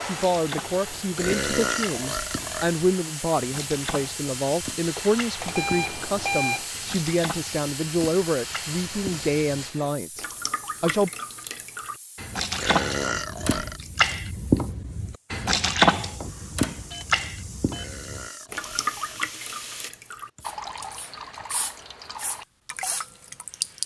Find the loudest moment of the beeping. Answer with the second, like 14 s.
6 s.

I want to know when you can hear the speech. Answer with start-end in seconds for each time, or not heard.
0.1-11.1.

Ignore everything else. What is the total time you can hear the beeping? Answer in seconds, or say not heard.
3 s.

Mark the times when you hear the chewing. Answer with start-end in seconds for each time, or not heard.
not heard.